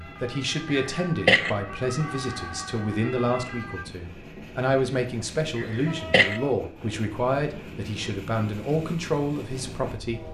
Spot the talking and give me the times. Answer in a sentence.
The talking can be heard from 0.0 to 10.2 s.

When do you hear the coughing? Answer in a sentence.
You can hear the coughing from 0.7 to 1.6 s and from 5.5 to 6.4 s.